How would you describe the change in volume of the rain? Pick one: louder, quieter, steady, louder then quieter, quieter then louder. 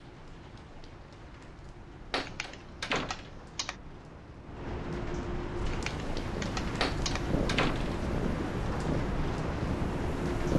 louder.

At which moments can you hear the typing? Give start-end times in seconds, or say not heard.
2.2-3.8, 5.7-7.3.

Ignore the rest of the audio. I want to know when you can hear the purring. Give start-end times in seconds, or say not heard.
5.5-10.5.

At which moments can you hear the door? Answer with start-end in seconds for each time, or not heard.
2.1-3.5, 6.8-8.0.